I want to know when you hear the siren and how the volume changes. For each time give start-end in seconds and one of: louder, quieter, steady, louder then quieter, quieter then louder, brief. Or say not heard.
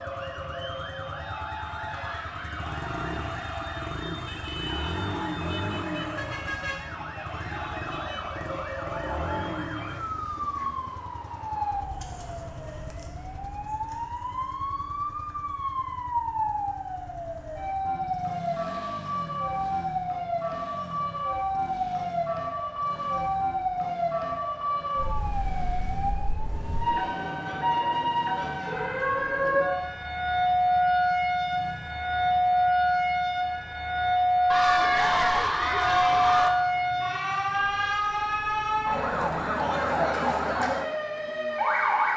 0.0-42.1 louder.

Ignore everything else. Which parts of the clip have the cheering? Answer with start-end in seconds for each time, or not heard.
1.9-3.7, 34.5-36.5.